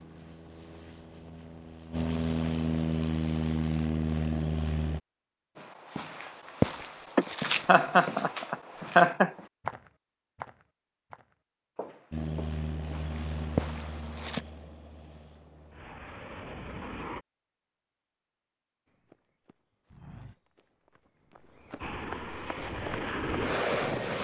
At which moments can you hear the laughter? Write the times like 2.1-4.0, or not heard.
7.2-9.3.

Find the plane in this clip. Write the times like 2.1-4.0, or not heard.
0.0-5.0, 12.1-17.2, 21.8-24.1.